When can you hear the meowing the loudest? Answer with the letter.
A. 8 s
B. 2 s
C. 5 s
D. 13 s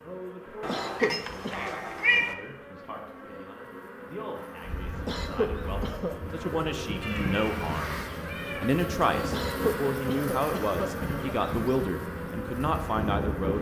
B.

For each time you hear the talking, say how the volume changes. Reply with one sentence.
You can hear the talking from 0.0 to 13.5 s, getting louder.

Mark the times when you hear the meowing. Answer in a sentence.
You can hear the meowing from 0.6 to 2.4 s and from 7.0 to 8.8 s.